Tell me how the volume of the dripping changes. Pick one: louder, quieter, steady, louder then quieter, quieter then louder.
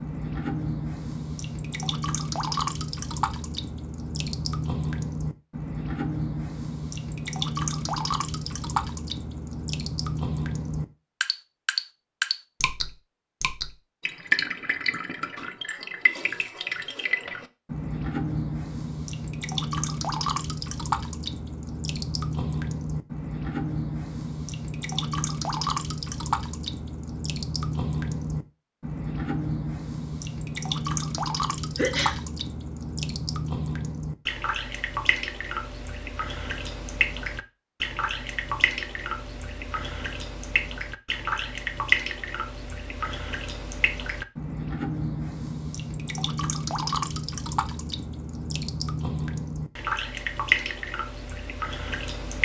steady.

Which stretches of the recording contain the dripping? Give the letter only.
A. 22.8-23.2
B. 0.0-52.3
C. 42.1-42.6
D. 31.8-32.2
B.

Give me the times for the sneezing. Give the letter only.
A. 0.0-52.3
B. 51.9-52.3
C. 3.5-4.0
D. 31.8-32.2
D.